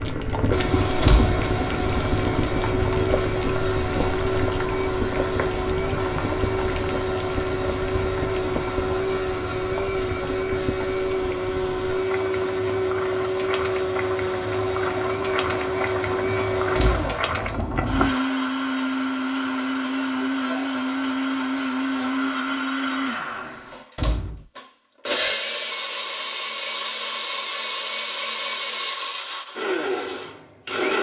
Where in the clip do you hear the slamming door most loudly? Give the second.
1 s.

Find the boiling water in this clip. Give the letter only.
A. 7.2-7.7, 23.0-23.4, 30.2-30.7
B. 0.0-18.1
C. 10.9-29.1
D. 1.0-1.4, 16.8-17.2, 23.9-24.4
B.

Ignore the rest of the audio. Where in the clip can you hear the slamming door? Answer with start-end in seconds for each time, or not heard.
1.0-1.4, 16.8-17.2, 23.9-24.4.